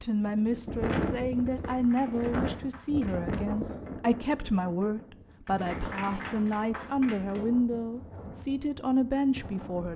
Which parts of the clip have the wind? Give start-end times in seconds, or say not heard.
0.0-9.9.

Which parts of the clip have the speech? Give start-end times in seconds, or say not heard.
0.0-9.9.